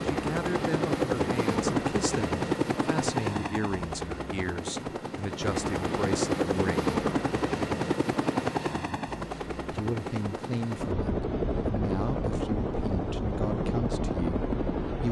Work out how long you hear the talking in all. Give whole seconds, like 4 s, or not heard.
12 s.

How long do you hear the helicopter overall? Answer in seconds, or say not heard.
15 s.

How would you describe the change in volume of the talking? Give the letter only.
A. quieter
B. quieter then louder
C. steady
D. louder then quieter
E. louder
C.